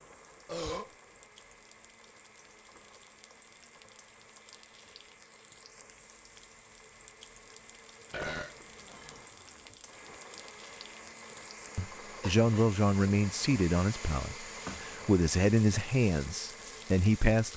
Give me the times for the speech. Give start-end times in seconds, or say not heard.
11.8-17.5.